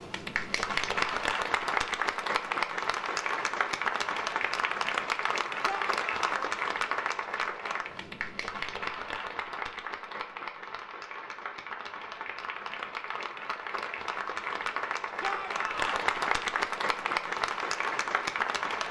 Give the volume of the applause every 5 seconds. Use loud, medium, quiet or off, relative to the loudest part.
loud, loud, medium, loud.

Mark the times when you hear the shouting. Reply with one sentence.
You can hear the shouting from 5.7 to 6.5 s and from 15.2 to 16.1 s.